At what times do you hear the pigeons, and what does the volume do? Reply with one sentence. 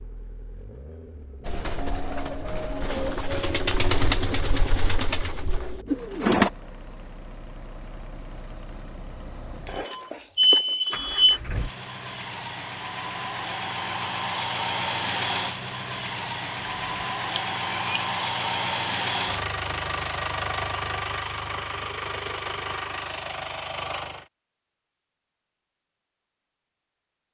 You can hear the pigeons from 1.4 to 6.5 s, getting louder then quieter.